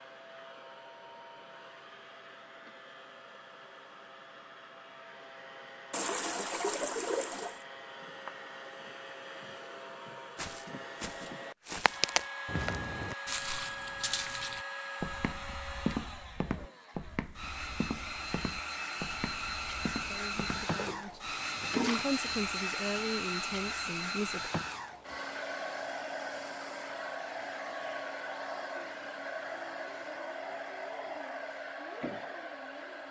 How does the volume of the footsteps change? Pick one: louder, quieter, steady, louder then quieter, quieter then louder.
quieter.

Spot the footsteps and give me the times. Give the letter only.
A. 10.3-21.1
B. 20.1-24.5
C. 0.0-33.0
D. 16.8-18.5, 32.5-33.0
A.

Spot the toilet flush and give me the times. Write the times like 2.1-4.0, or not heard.
5.9-7.6, 21.6-22.1.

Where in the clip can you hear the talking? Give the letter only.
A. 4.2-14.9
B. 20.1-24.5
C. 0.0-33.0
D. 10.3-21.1
B.